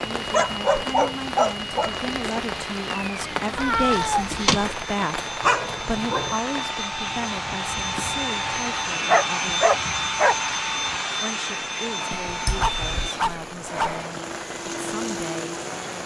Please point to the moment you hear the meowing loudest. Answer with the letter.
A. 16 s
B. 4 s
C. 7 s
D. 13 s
B.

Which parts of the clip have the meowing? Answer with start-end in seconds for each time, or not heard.
3.5-4.7, 12.2-13.1.